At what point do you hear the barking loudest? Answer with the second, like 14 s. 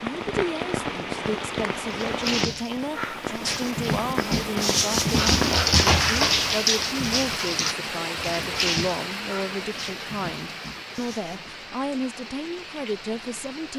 6 s.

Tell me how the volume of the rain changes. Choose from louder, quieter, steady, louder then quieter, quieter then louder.
quieter.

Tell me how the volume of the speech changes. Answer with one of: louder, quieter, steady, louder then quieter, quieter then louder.
steady.